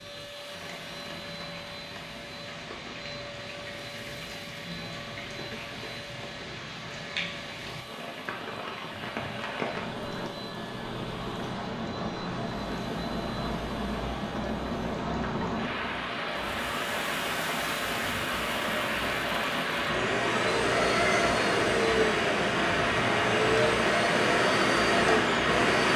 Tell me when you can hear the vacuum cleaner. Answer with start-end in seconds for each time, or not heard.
0.0-25.9.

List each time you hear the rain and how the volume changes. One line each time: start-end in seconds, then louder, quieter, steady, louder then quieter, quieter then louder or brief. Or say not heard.
0.0-25.9 louder.